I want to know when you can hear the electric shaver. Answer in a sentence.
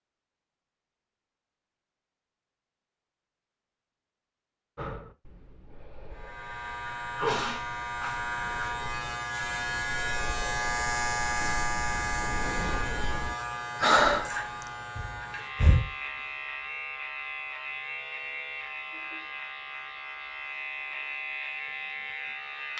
You can hear the electric shaver from 6.1 to 22.7 s.